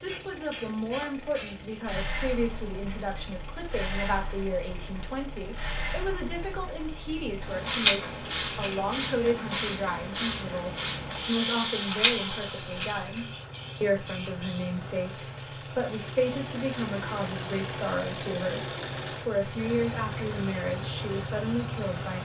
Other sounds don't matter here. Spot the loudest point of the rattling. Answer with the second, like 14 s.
8 s.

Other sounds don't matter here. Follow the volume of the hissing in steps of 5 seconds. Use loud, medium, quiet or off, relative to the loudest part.
medium, loud, loud, quiet, quiet.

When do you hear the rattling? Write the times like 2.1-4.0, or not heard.
7.7-8.8, 11.8-13.2.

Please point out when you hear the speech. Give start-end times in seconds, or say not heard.
0.0-22.1.